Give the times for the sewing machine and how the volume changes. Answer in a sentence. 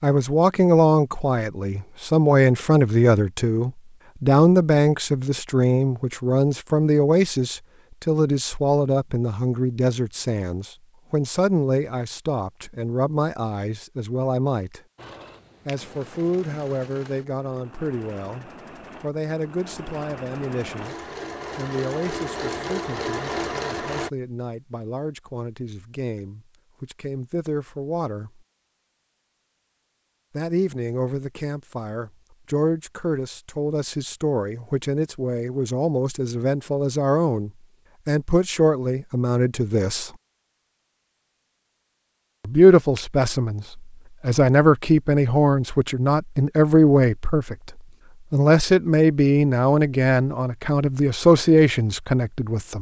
You can hear the sewing machine from 14.9 to 24.1 s, getting louder.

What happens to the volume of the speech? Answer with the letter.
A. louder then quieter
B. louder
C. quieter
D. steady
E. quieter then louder
E.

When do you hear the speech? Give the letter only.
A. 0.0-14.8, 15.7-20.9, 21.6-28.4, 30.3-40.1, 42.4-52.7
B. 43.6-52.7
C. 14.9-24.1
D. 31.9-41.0
A.